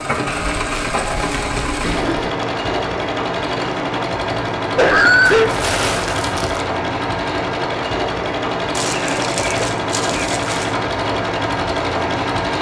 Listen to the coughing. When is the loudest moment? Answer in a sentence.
The loudest moment of the coughing is at 5 seconds.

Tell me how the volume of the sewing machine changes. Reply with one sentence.
The loudness of the sewing machine stays about the same.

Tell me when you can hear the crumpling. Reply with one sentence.
You can hear the crumpling from 0.2 to 2.1 s, from 5.2 to 6.7 s and from 8.7 to 10.8 s.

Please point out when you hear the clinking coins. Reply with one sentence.
The clinking coins can't be heard in this clip.